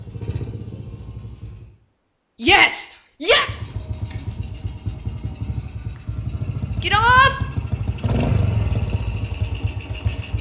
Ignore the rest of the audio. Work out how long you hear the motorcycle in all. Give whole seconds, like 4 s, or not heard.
9 s.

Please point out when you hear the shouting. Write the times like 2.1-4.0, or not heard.
2.4-3.5, 6.8-7.3.